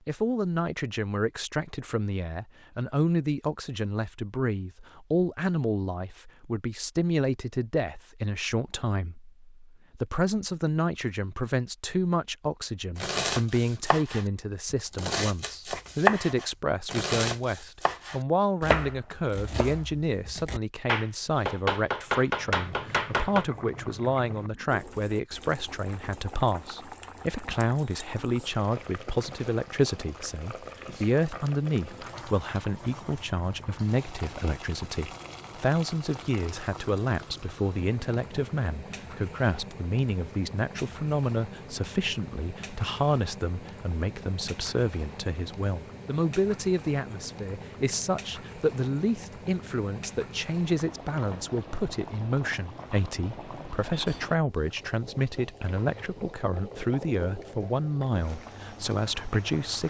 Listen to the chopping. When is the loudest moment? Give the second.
16 s.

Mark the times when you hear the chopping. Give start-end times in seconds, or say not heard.
12.9-23.4.